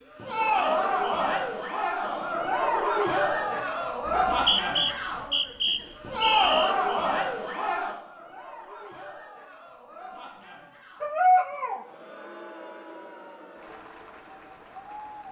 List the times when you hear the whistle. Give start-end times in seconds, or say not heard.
4.0-6.8.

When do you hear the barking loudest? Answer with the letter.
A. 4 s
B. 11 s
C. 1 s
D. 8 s
B.